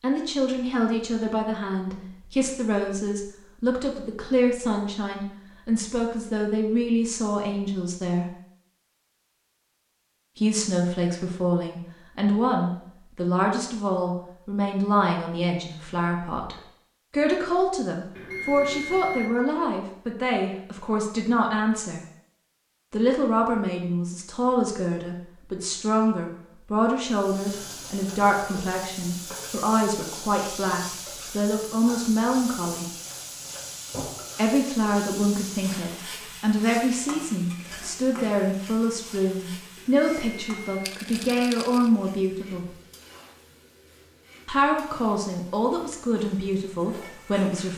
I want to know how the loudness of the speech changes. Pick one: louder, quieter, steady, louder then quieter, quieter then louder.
steady.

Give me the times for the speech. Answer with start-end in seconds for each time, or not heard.
0.0-8.2, 10.3-22.0, 22.9-32.9, 34.4-42.6, 44.5-47.7.